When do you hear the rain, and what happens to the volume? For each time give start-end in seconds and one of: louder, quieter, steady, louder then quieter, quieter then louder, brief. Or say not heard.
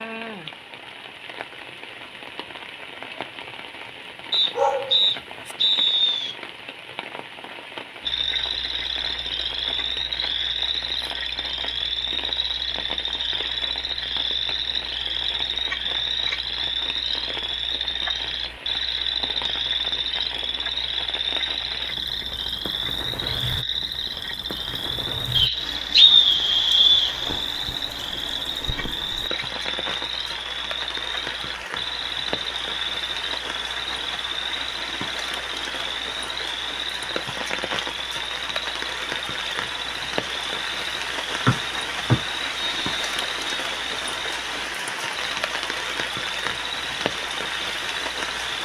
0.0-48.6 louder.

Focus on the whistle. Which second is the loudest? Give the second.
26 s.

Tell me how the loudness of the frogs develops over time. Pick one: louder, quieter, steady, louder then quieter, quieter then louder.
quieter.